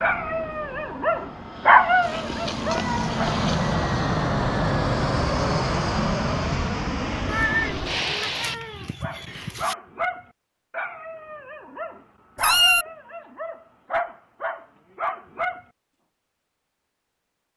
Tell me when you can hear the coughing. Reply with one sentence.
The coughing can't be heard in this clip.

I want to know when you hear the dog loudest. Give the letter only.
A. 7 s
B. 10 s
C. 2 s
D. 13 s
C.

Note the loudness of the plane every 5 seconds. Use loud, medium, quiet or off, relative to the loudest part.
loud, loud, off, off.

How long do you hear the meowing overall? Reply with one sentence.
You can hear the meowing for 5 seconds altogether.